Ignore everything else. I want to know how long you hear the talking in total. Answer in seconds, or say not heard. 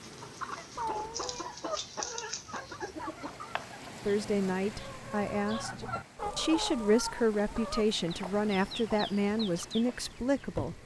7 s.